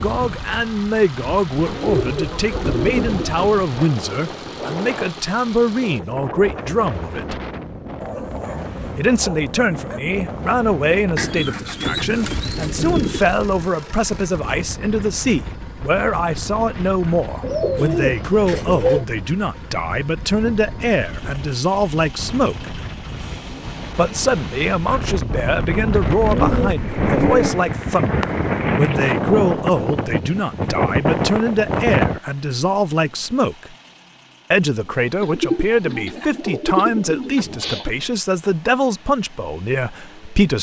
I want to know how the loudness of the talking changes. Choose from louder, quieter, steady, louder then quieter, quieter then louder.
steady.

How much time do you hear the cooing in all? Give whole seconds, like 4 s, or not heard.
10 s.